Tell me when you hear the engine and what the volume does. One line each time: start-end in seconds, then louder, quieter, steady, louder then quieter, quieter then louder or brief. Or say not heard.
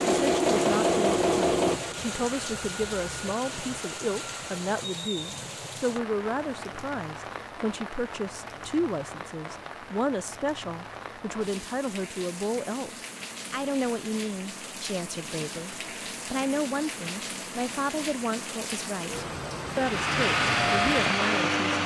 0.0-4.7 quieter
19.7-21.8 brief.